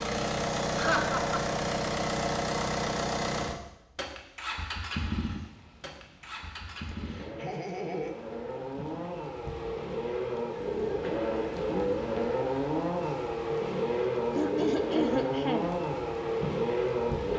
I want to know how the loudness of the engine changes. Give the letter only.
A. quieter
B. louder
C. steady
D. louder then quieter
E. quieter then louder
E.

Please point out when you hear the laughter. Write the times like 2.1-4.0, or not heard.
0.8-1.4, 6.8-8.2, 14.3-15.7.